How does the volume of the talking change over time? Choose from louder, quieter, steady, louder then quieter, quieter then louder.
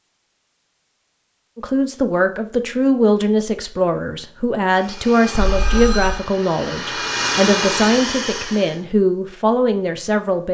steady.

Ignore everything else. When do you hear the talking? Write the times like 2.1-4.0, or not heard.
1.6-10.4.